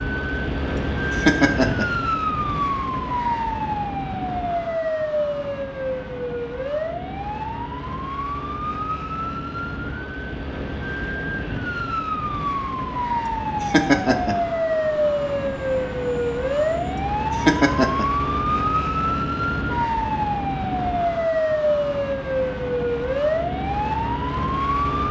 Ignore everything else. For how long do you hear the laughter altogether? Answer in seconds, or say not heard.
2 s.